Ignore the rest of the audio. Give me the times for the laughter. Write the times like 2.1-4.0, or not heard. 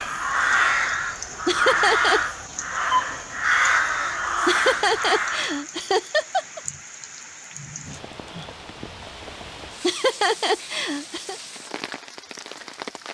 1.4-2.2, 4.5-6.6, 9.8-11.3.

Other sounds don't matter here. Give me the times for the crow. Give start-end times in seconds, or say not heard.
0.0-5.7.